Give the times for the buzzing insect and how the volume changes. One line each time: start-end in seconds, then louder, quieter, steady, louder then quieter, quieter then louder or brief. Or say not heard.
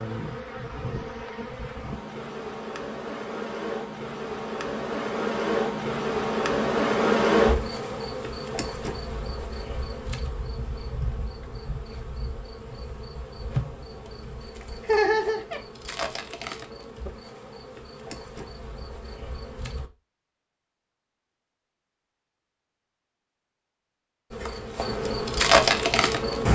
0.0-19.9 louder then quieter
24.3-26.5 brief.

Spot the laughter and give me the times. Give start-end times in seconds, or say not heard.
14.8-15.6.